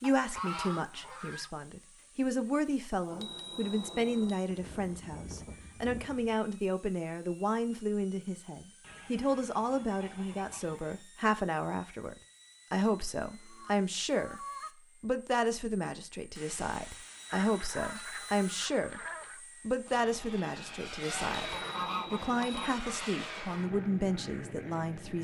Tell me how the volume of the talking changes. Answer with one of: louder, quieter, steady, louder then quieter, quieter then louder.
steady.